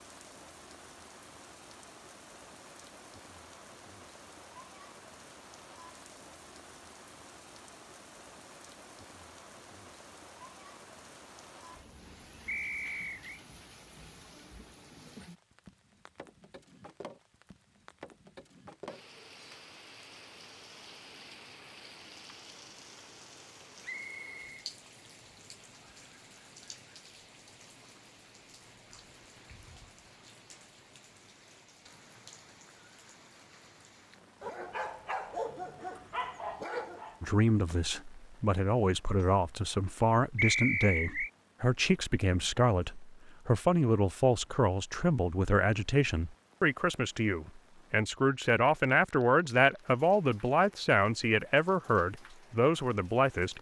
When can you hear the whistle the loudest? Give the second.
41 s.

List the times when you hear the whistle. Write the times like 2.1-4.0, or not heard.
12.4-13.4, 23.8-24.5, 40.4-41.3.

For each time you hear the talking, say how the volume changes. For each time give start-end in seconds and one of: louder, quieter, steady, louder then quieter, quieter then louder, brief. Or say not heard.
37.2-53.5 steady.